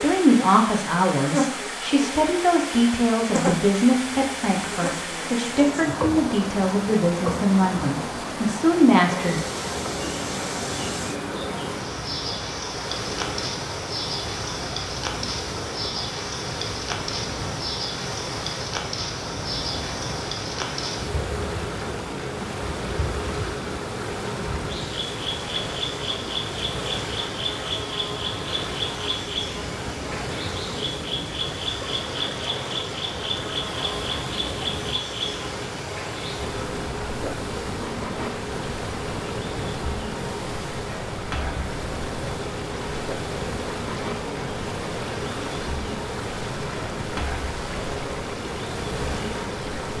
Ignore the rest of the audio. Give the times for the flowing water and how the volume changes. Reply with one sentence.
You can hear the flowing water from 0.0 to 49.9 s, at a steady volume.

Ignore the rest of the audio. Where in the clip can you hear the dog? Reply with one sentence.
The dog can't be heard in this clip.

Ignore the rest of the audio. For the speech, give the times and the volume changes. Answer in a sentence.
The speech can be heard from 0.0 to 9.4 s, at a steady volume.